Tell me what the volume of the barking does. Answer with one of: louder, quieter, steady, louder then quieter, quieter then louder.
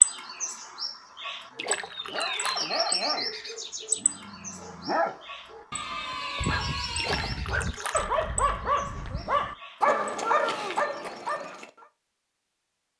louder.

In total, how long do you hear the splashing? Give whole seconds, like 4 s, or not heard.
3 s.